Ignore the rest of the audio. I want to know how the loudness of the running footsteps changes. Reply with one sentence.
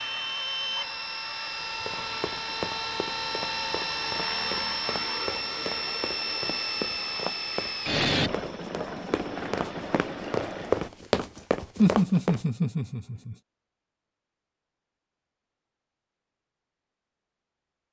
The loudness of the running footsteps goes up.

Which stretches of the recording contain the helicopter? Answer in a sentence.
The helicopter can be heard from 0.0 to 10.9 s.